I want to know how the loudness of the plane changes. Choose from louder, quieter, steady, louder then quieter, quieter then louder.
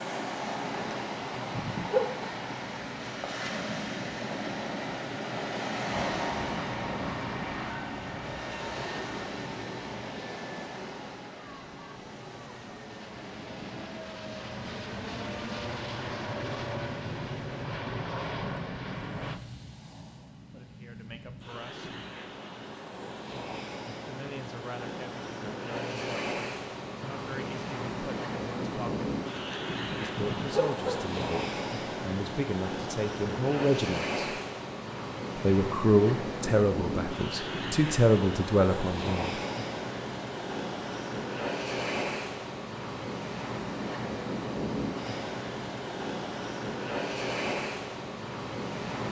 quieter then louder.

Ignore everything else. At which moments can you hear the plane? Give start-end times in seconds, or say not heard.
5.8-19.4.